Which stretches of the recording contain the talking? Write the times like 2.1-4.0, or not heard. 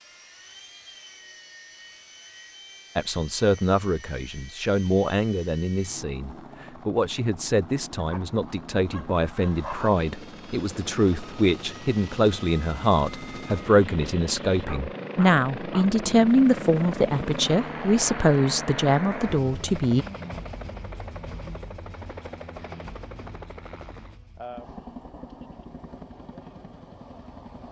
3.0-20.1.